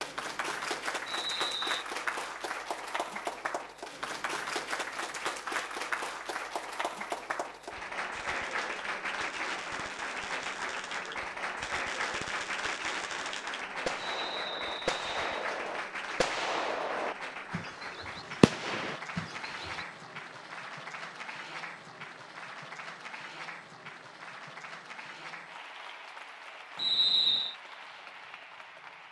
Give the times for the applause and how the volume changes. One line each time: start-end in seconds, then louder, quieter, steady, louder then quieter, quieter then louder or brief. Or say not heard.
0.0-29.0 quieter.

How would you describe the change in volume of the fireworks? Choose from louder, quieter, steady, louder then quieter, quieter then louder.
louder.